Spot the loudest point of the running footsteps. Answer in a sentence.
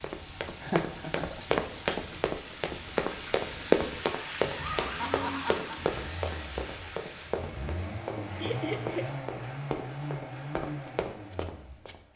The loudest moment of the running footsteps is at 4 seconds.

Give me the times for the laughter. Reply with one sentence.
You can hear the laughter from 0.6 to 1.6 s, from 4.5 to 5.8 s and from 8.4 to 9.1 s.